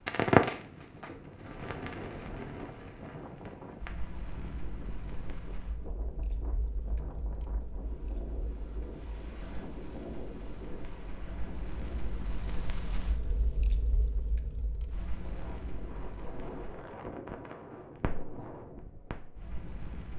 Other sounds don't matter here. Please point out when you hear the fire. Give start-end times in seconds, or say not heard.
0.1-20.1.